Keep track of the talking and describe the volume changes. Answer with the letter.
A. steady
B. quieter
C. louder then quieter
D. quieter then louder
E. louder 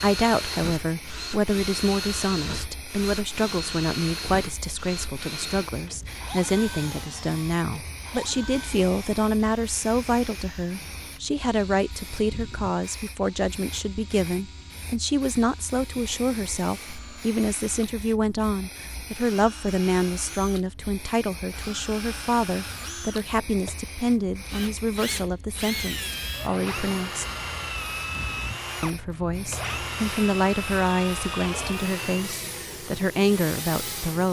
A.